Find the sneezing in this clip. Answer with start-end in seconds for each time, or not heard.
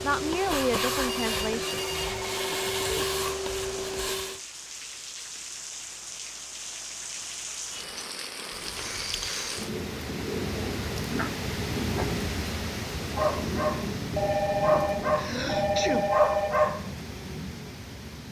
15.2-16.1.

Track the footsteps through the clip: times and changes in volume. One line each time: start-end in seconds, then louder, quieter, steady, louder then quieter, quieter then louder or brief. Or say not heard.
not heard.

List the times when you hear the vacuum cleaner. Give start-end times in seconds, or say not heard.
0.0-4.4.